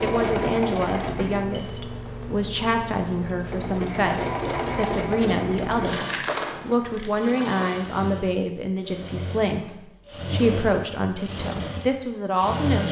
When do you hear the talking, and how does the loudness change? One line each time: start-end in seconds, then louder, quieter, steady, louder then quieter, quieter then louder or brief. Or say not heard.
0.0-12.8 steady.